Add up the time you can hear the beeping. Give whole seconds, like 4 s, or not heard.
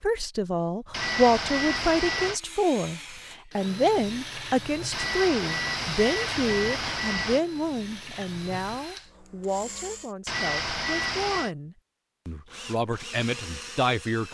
5 s.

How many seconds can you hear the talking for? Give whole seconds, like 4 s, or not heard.
14 s.